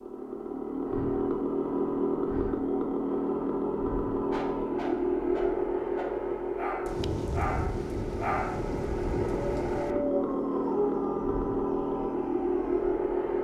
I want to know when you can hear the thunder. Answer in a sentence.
You can hear the thunder from 6.8 to 9.9 s.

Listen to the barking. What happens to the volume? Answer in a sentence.
The volume of the barking goes up, then down.